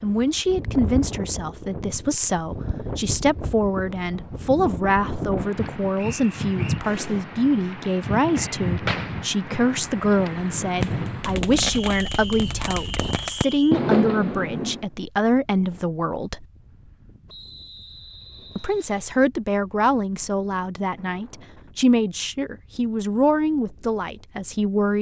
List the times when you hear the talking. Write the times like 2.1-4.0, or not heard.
0.0-16.4, 18.6-24.9.